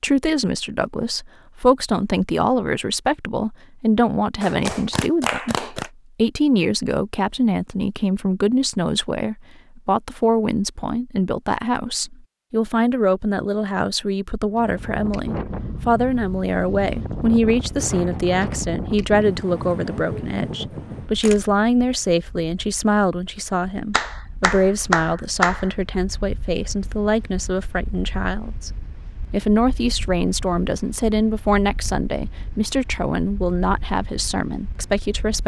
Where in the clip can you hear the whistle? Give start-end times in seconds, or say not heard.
not heard.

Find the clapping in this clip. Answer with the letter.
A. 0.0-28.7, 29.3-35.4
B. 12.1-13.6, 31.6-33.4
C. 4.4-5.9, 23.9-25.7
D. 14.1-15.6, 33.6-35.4
C.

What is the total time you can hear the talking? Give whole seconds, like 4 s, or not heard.
35 s.